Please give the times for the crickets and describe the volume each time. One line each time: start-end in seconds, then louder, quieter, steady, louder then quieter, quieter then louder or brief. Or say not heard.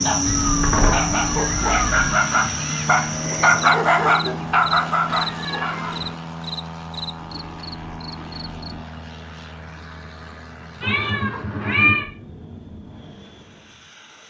0.0-8.8 quieter.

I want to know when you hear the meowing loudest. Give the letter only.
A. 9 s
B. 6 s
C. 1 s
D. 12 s
D.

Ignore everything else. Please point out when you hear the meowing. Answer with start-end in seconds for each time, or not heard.
0.2-2.1, 5.0-6.2, 10.8-12.1.